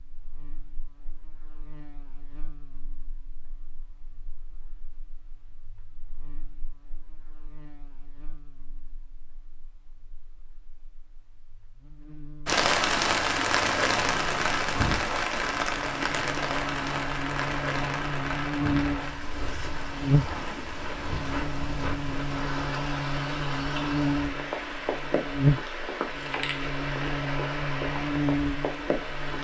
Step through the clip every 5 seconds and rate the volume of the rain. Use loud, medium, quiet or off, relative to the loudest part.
off, off, loud, medium, medium, medium.